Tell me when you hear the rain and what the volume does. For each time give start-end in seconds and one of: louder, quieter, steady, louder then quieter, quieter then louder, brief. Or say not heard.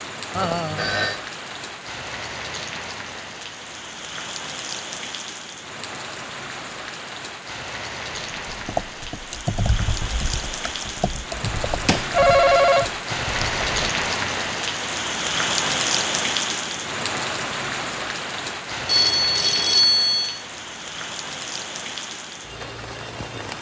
0.0-23.5 louder then quieter.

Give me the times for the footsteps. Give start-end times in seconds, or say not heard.
not heard.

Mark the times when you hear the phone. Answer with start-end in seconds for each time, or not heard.
0.3-1.2, 11.8-12.9, 18.9-20.4.